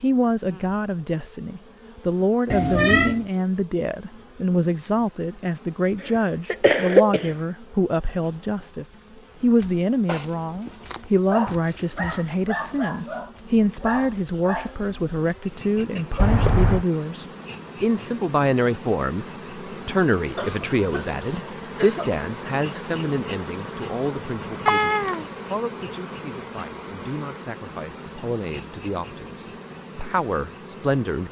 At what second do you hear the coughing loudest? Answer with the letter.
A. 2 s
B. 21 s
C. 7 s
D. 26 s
C.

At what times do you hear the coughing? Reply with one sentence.
You can hear the coughing from 6.0 to 7.3 s and from 20.4 to 22.1 s.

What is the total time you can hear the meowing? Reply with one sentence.
You can hear the meowing for 2 seconds altogether.